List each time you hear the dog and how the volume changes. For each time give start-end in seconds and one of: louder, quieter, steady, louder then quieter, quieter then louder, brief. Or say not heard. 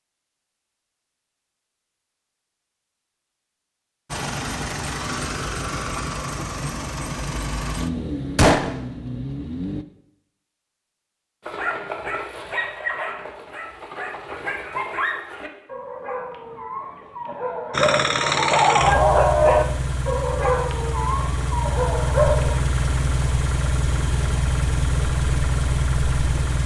11.4-22.6 louder then quieter.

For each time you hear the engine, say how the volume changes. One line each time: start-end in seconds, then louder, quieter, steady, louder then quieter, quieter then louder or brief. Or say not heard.
4.0-9.8 steady
17.7-26.6 quieter then louder.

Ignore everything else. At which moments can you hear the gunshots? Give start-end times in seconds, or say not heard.
8.3-8.8.